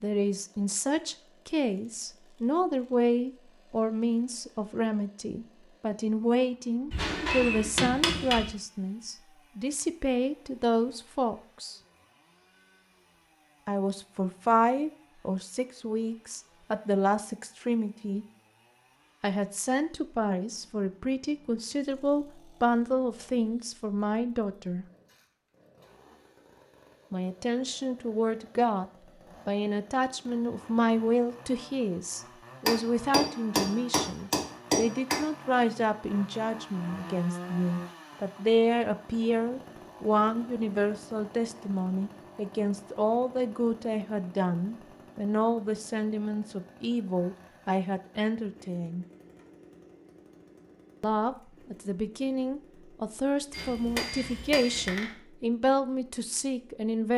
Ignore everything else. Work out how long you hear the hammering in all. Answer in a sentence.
The hammering can be heard for 6 seconds in total.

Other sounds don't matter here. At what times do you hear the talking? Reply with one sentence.
The talking can be heard from 0.0 to 11.8 s, from 13.7 to 18.2 s, from 19.2 to 24.9 s, from 27.1 to 28.9 s, from 29.4 to 49.0 s and from 51.0 to 57.1 s.